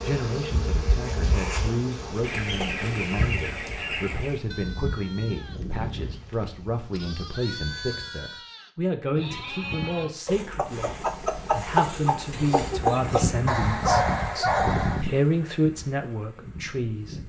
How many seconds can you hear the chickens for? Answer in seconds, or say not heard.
5 s.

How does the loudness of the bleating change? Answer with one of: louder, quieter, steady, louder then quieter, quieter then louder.
quieter then louder.